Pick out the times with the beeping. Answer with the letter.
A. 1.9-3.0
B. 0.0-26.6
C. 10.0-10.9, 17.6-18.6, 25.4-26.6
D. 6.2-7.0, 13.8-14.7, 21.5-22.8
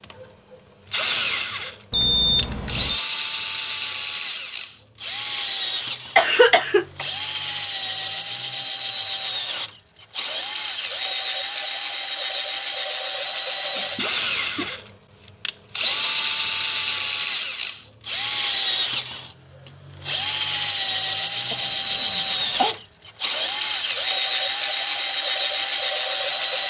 A.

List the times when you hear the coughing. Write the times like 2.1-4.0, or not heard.
6.2-7.0, 13.8-14.7, 21.5-22.8.